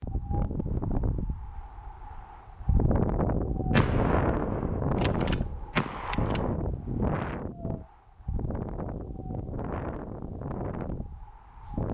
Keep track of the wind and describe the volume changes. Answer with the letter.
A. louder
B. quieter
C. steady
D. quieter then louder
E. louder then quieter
E.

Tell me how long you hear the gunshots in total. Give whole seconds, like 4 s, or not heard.
3 s.